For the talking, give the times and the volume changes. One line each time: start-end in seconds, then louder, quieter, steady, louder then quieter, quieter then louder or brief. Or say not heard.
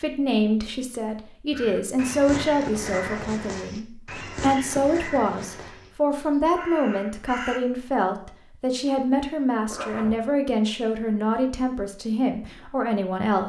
0.0-13.4 steady.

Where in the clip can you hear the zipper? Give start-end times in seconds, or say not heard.
2.9-3.4, 9.7-10.2.